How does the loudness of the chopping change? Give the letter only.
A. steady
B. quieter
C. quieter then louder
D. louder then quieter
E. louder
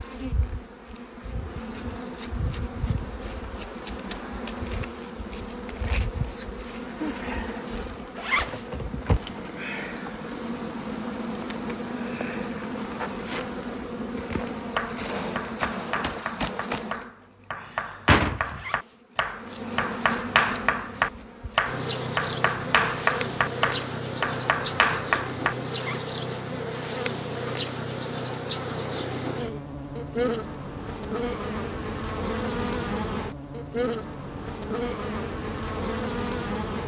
E.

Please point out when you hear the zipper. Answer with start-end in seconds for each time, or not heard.
8.2-8.7, 18.4-18.9, 25.7-26.1.